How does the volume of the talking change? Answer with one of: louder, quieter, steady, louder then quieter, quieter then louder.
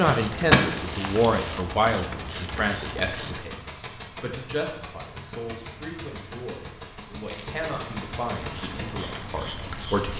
quieter.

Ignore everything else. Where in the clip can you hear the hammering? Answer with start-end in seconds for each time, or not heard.
not heard.